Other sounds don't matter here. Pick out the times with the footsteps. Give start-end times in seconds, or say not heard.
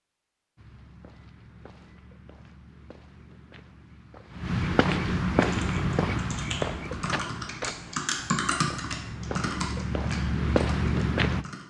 0.6-11.4.